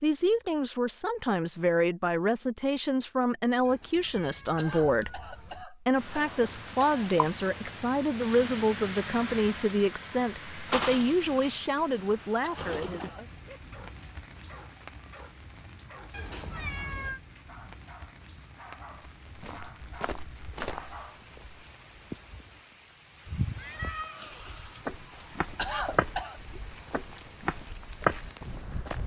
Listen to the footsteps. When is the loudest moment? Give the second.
28 s.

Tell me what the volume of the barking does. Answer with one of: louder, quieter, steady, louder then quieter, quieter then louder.
steady.